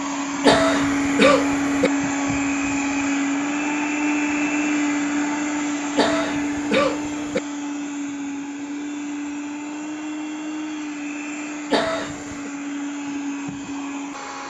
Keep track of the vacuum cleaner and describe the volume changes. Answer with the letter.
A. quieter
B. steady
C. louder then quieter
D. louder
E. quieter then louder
A.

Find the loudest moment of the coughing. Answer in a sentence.
The loudest moment of the coughing is at 1 second.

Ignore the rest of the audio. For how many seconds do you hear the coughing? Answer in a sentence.
The coughing can be heard for 4 seconds in total.